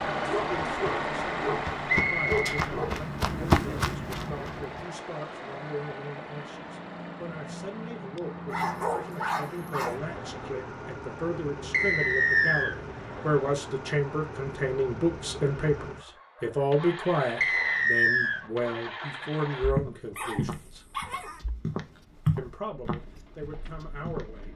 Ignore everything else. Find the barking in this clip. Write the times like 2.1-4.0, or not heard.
0.2-3.0, 8.4-10.0, 20.1-21.4.